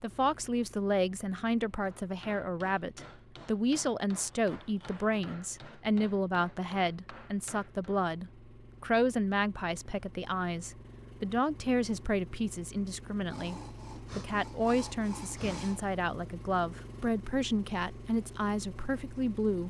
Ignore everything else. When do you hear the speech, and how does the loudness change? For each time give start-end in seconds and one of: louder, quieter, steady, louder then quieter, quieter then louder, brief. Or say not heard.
0.0-19.6 steady.